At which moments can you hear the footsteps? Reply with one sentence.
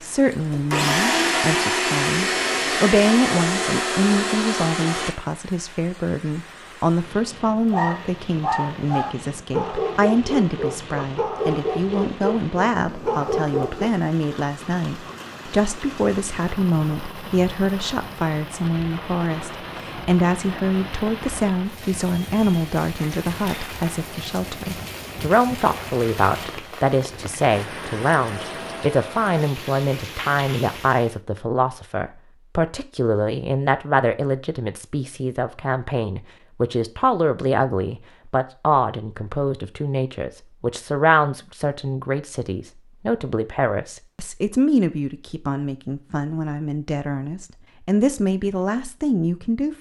You can't hear the footsteps here.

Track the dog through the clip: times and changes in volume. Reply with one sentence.
You can hear the dog from 7.7 to 13.9 s, at a steady volume.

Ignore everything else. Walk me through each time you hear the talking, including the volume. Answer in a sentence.
You can hear the talking from 0.0 to 49.7 s, at a steady volume.